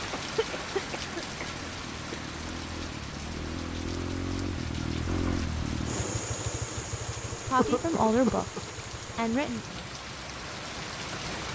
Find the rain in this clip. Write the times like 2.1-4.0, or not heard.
0.0-11.4.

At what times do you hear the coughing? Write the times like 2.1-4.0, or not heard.
0.1-2.4, 7.5-8.7.